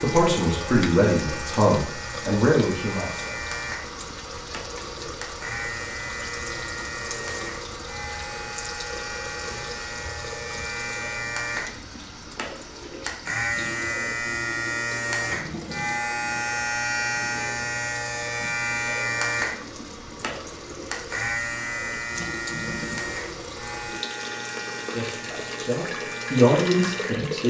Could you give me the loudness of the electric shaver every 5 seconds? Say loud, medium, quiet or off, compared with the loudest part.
medium, medium, loud, loud, medium, medium.